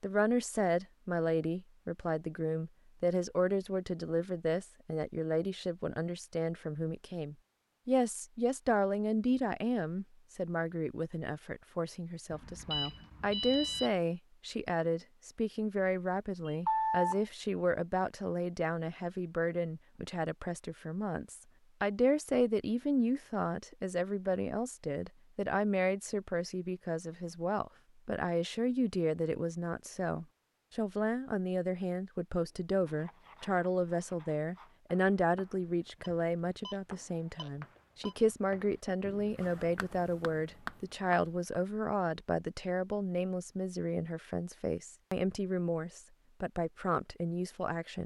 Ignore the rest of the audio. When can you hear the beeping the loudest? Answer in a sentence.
The volume of the beeping peaks at 17 seconds.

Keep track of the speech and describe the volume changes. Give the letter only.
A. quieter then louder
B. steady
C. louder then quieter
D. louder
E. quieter
B.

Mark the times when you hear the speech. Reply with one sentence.
You can hear the speech from 0.0 to 48.0 s.